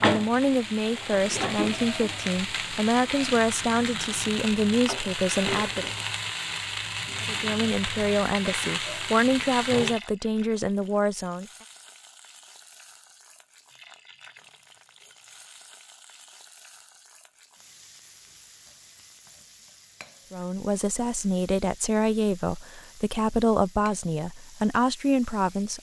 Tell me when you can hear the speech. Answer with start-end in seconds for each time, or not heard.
0.0-5.9, 7.2-11.4, 20.3-25.7.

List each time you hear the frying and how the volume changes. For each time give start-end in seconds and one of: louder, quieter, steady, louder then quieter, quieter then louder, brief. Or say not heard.
0.0-25.7 quieter.